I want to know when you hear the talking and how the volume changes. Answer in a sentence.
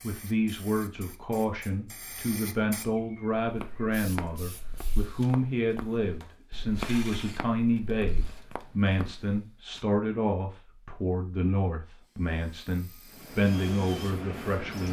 You can hear the talking from 0.0 to 14.8 s, at a steady volume.